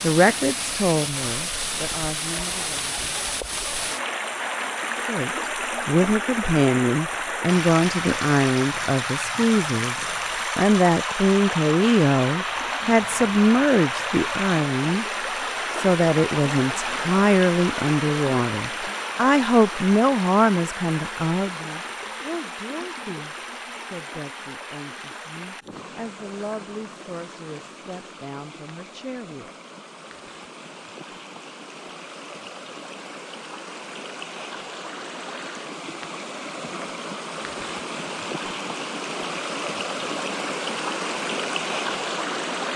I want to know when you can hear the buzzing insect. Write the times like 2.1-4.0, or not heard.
not heard.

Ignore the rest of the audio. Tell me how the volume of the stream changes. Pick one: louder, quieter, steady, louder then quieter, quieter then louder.
quieter then louder.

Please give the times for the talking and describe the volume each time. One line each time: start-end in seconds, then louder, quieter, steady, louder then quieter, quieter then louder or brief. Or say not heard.
0.0-2.9 brief
5.0-15.1 steady
15.8-29.5 quieter.